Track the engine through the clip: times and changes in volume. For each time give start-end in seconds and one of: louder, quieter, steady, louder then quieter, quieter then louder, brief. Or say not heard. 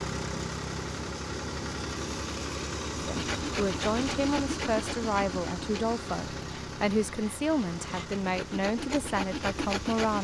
0.0-10.1 quieter.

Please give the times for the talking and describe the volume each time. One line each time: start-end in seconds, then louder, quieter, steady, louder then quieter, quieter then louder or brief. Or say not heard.
3.0-10.1 steady.